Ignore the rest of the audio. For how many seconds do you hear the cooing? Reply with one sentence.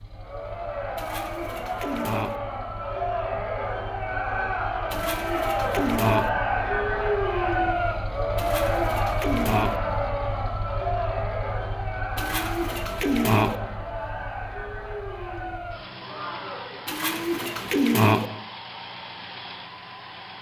The cooing can be heard for 7 seconds in total.